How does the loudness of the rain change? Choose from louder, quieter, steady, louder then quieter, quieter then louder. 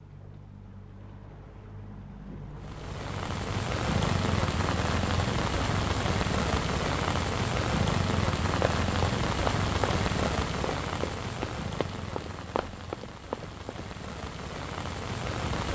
quieter.